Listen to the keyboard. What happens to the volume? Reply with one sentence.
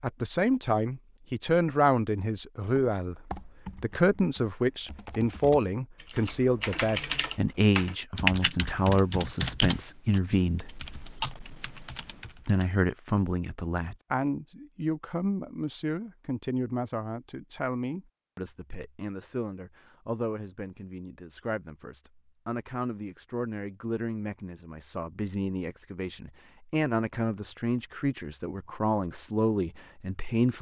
The loudness of the keyboard goes up, then down.